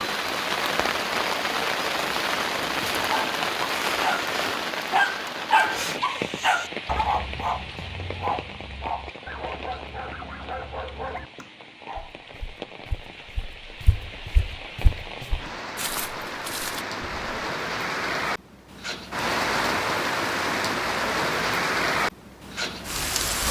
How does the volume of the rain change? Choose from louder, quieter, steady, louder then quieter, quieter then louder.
quieter then louder.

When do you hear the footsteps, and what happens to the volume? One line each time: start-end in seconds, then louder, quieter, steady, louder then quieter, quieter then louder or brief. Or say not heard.
11.9-17.4 louder.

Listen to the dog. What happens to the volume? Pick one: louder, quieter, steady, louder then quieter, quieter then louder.
quieter.